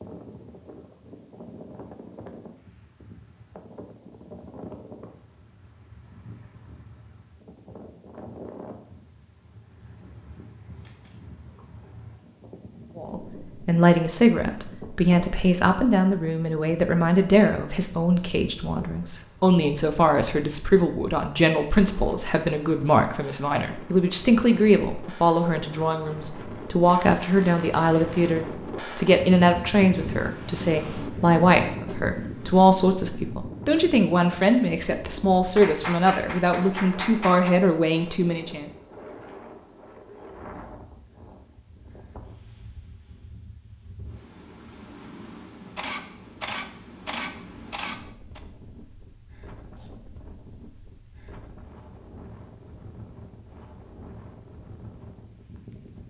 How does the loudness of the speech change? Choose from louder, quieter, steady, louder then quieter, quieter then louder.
steady.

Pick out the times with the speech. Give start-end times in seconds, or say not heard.
12.9-38.6.